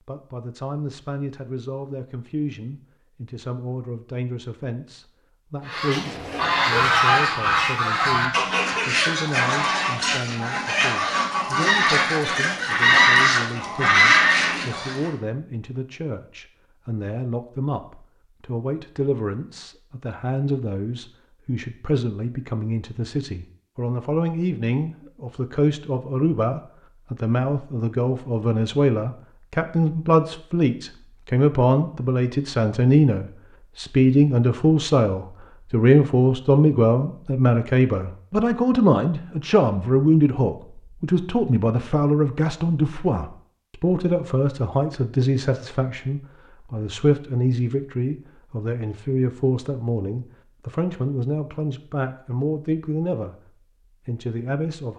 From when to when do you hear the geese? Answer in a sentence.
You can hear the geese from 5.7 to 15.1 s.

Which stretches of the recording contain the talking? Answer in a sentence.
You can hear the talking from 0.1 to 53.4 s and from 54.0 to 54.9 s.